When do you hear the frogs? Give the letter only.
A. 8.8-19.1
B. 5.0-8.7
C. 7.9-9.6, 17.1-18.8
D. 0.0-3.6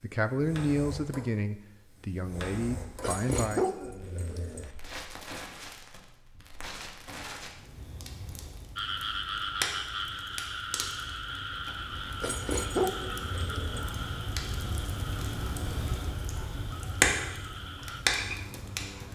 A.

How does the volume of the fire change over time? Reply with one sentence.
The loudness of the fire goes up.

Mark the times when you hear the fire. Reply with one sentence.
You can hear the fire from 0.0 to 19.1 s.